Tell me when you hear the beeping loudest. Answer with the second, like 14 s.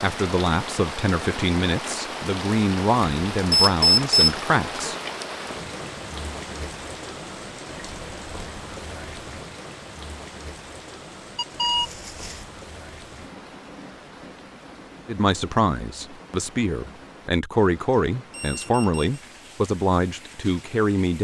4 s.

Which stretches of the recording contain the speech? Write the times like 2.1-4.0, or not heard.
0.0-5.0, 15.1-21.1.